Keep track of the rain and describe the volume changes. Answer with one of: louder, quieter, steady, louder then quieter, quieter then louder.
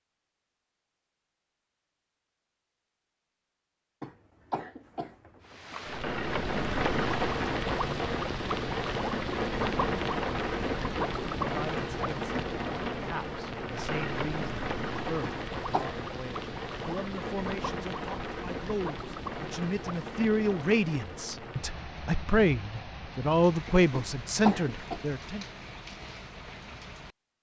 quieter.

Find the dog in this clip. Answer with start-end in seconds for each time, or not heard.
not heard.